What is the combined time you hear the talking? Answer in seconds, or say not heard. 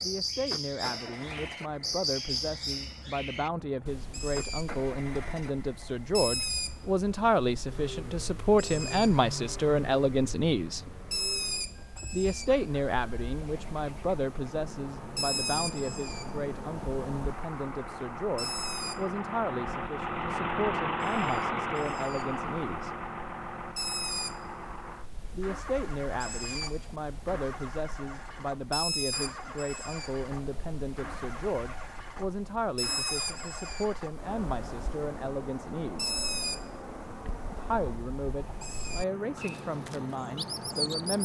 36 s.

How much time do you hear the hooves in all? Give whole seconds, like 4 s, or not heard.
not heard.